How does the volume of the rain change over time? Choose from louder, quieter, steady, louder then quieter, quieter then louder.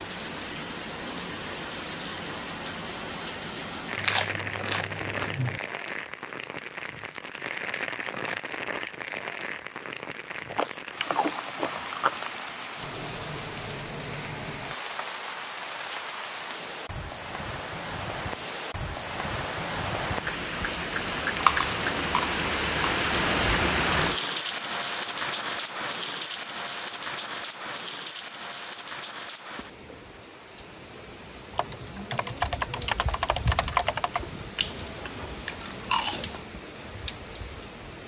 louder then quieter.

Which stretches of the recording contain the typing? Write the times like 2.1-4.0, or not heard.
31.5-34.4.